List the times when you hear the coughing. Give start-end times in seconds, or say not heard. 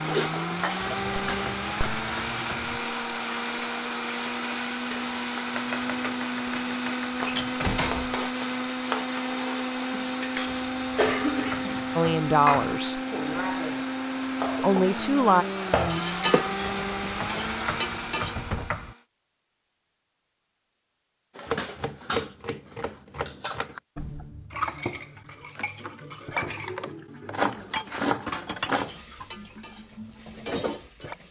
not heard.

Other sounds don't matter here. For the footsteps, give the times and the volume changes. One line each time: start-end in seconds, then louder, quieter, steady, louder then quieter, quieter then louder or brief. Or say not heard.
not heard.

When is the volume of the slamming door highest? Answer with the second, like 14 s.
8 s.